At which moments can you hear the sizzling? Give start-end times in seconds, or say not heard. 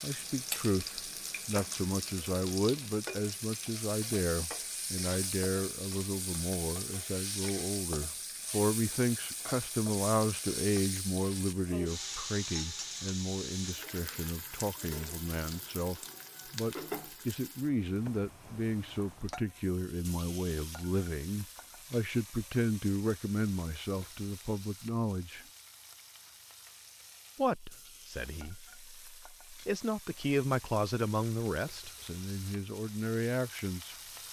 0.0-34.2.